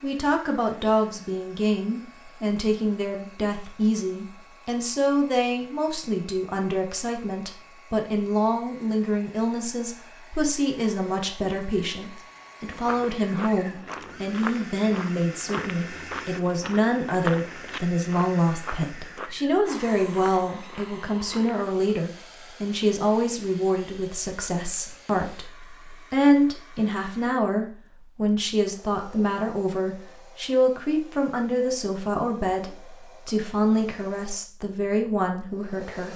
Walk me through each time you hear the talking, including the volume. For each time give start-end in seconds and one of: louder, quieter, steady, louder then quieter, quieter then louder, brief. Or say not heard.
0.0-36.1 steady.